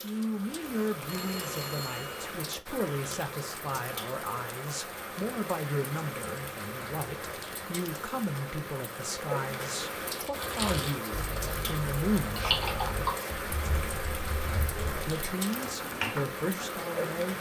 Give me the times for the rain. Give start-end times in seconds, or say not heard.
0.0-17.3.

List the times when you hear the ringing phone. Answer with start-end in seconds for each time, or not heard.
1.1-2.3.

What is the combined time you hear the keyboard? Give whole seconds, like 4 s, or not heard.
7 s.